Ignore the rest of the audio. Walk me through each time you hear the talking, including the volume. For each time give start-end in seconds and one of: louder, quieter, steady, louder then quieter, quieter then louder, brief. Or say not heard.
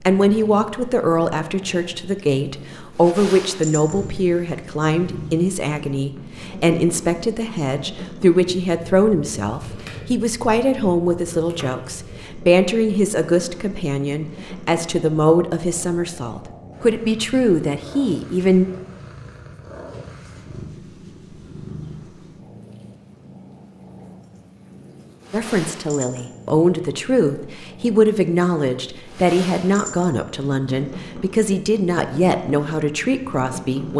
0.0-18.6 steady
25.3-33.9 steady.